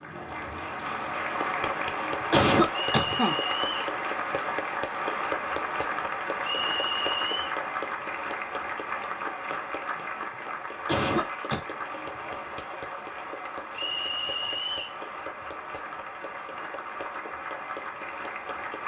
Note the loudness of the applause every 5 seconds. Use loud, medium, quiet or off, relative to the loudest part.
loud, loud, medium, medium.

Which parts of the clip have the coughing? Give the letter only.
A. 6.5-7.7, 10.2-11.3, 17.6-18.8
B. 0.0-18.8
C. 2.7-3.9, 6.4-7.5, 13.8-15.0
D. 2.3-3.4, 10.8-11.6
D.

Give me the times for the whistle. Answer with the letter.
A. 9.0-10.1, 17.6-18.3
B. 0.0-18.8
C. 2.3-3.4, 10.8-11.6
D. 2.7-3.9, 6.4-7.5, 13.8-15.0
D.